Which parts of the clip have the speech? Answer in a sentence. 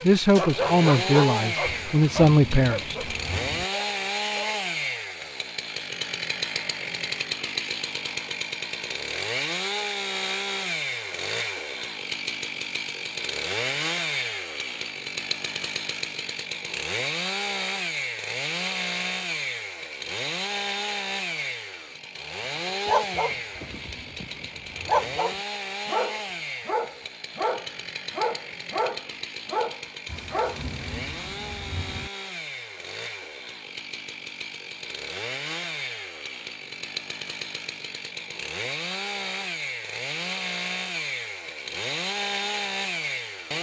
You can hear the speech from 0.0 to 3.0 s.